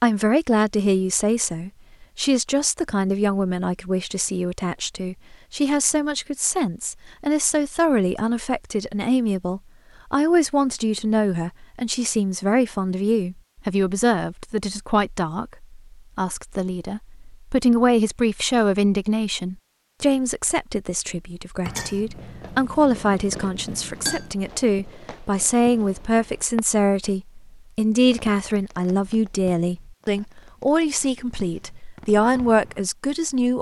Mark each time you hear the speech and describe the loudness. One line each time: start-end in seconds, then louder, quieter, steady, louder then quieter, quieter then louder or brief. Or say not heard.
0.0-33.5 steady.